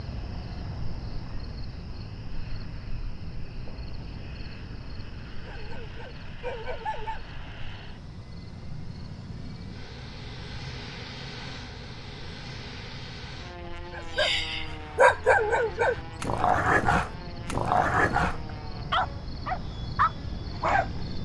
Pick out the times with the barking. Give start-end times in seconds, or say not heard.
5.5-7.2, 13.9-20.9.